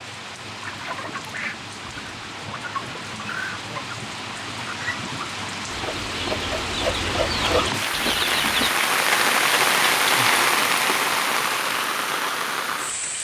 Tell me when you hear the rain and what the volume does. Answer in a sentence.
You can hear the rain from 0.0 to 13.1 s, getting louder.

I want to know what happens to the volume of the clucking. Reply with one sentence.
The volume of the clucking goes up.